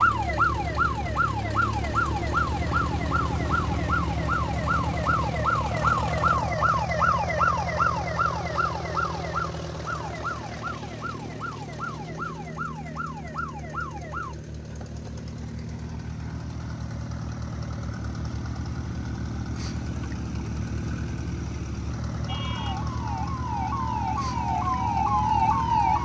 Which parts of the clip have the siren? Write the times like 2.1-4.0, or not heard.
0.0-14.3, 22.2-26.0.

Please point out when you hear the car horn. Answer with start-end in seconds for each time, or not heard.
not heard.